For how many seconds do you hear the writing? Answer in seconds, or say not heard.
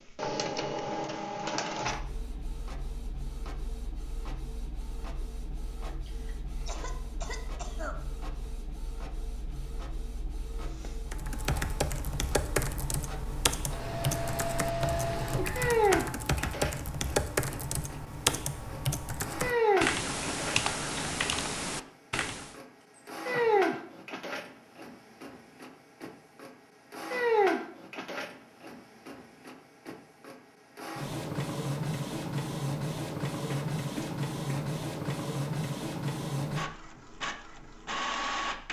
not heard.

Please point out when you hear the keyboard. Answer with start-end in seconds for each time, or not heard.
11.1-22.6.